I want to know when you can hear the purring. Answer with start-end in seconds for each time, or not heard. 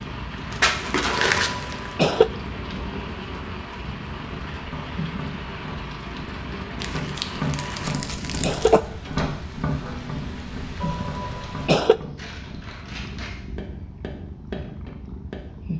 0.0-15.7.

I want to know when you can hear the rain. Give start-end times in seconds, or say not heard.
0.0-11.7.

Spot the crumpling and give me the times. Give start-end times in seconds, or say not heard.
0.5-1.9, 6.8-8.7, 12.2-13.3.